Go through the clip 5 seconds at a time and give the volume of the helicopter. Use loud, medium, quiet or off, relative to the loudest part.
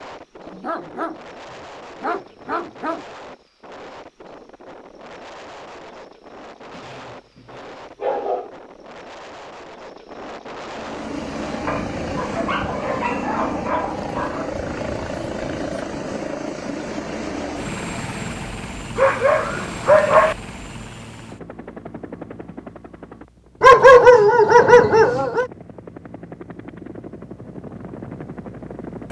off, off, loud, loud, medium, medium.